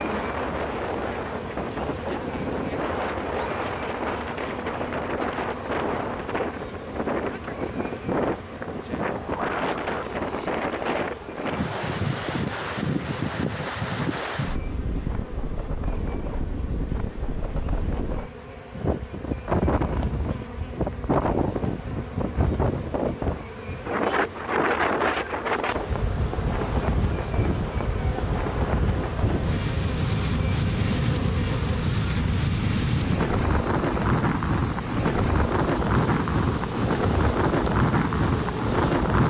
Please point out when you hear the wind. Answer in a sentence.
You can hear the wind from 0.0 to 39.2 s.